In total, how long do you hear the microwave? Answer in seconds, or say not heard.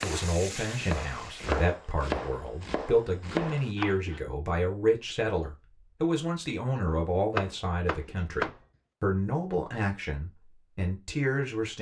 not heard.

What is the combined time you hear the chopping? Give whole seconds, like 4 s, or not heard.
6 s.